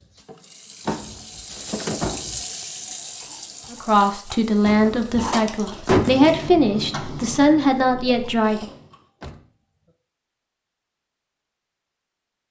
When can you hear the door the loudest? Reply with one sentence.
The volume of the door peaks at 6 seconds.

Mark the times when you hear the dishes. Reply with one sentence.
The dishes can't be heard in this clip.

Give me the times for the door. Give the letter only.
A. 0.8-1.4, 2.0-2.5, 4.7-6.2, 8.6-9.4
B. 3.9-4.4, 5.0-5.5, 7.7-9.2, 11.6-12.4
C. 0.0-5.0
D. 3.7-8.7
A.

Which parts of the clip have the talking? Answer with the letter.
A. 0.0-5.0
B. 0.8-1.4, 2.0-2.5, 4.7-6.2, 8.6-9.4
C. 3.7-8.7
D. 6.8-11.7
C.